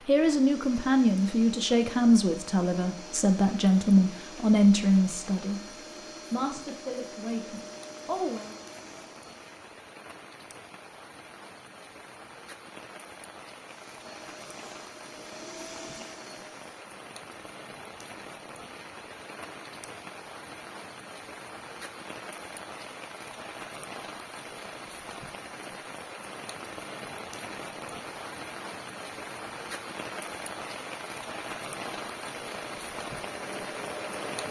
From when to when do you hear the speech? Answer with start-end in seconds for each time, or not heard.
0.1-8.6.